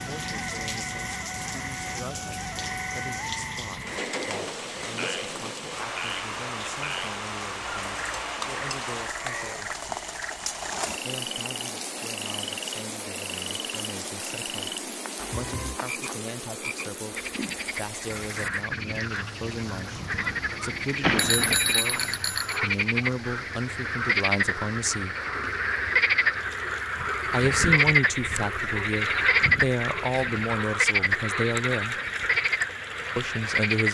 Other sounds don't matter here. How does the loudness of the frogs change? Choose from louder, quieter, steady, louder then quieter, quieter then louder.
louder.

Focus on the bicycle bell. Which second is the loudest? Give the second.
21 s.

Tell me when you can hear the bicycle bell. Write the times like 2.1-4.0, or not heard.
21.0-22.6.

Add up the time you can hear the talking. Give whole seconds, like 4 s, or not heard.
29 s.